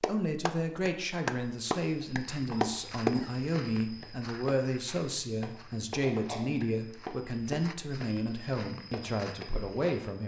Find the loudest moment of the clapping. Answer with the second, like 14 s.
3 s.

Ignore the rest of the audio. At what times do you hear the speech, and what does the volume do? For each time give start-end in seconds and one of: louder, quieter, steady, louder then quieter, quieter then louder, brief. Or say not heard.
0.0-10.2 steady.